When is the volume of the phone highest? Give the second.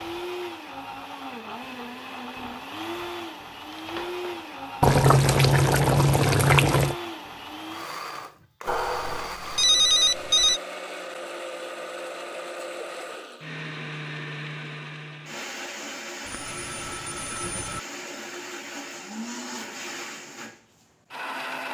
10 s.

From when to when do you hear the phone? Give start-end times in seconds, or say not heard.
3.7-4.5, 8.7-10.6, 16.2-17.8.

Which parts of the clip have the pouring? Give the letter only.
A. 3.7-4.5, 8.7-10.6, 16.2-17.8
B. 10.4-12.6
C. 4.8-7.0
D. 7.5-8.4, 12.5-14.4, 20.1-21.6
C.